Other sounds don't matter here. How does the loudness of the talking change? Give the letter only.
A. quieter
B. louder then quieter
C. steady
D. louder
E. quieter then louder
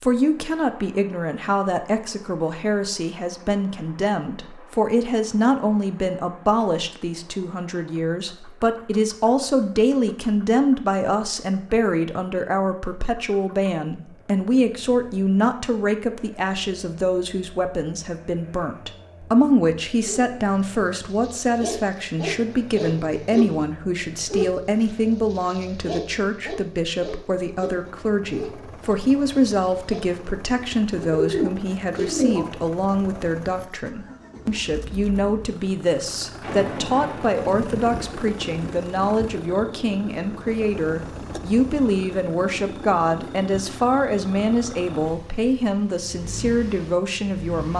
C.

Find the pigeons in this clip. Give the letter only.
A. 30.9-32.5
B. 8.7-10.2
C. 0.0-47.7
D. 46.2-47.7
A.